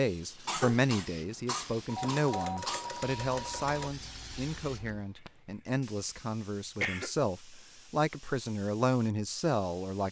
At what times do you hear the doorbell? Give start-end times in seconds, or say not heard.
1.9-3.9.